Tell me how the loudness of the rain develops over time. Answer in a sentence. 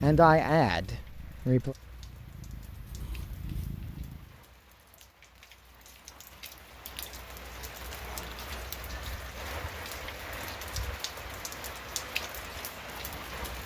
The volume of the rain goes up.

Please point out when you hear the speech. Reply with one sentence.
The speech can be heard from 0.0 to 1.8 s.